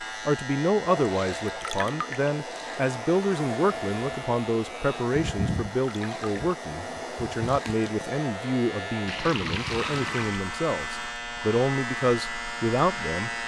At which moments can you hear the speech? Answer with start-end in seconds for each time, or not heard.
0.2-13.3.